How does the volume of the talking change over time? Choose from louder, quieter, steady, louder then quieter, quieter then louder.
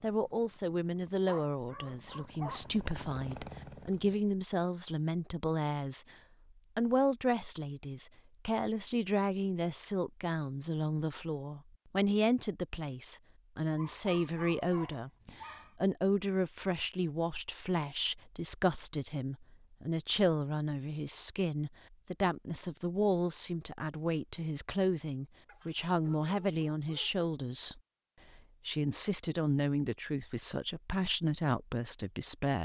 steady.